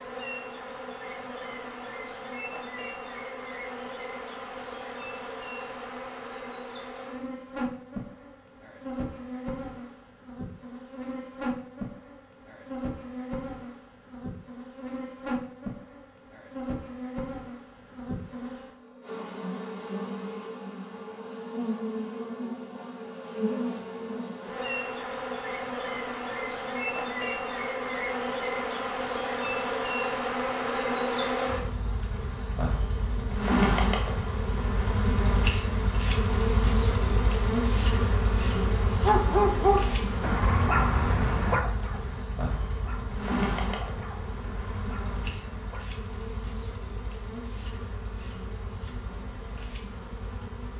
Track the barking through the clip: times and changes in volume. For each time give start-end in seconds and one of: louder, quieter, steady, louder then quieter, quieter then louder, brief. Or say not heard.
38.5-45.9 quieter.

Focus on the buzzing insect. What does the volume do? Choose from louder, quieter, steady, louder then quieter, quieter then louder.
louder then quieter.